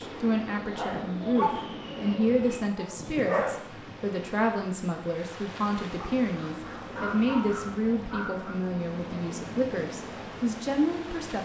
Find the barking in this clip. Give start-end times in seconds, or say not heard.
0.8-3.6, 6.0-8.6.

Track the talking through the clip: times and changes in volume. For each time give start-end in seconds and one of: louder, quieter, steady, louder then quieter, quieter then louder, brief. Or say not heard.
0.0-11.4 steady.